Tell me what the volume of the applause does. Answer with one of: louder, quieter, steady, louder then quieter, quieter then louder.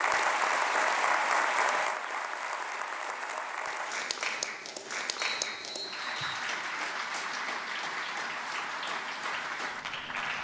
quieter.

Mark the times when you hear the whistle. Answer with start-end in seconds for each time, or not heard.
5.2-6.5.